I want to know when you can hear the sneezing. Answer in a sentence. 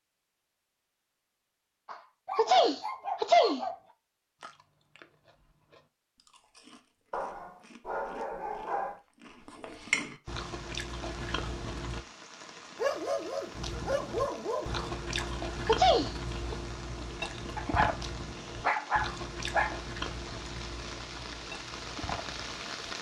The sneezing can be heard from 1.9 to 3.6 s and from 15.2 to 16.6 s.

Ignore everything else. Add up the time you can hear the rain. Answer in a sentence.
The rain can be heard for 13 seconds in total.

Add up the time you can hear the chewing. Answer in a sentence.
You can hear the chewing for 17 seconds altogether.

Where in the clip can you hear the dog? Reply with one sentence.
The dog can be heard from 2.2 to 3.8 s, from 7.1 to 9.0 s, from 12.8 to 14.9 s and from 17.6 to 19.8 s.